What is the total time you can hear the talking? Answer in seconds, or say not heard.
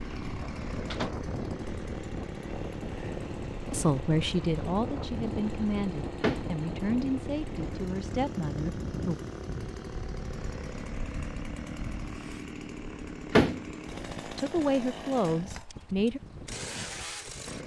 7 s.